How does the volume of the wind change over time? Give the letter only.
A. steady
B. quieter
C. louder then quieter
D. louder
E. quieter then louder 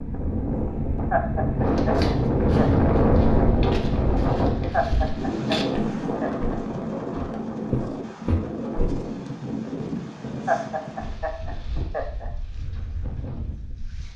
B.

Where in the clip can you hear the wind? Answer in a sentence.
You can hear the wind from 0.0 to 14.1 s.